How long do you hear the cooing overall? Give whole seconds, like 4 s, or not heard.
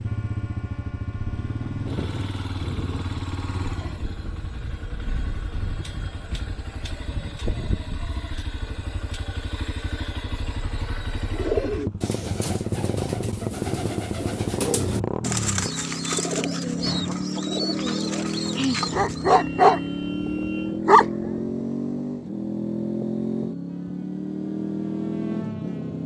8 s.